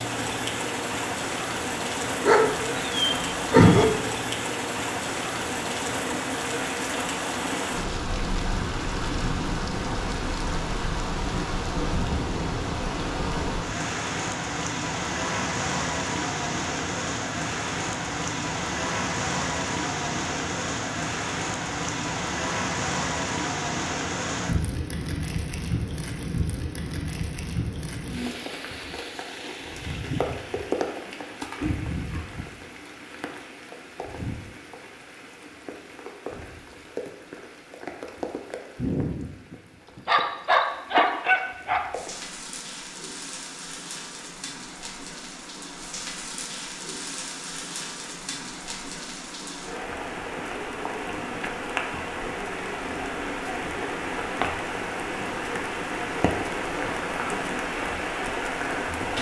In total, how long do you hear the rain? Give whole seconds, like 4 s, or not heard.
59 s.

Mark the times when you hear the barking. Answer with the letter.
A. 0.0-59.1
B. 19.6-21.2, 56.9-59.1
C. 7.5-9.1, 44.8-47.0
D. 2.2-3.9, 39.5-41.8
D.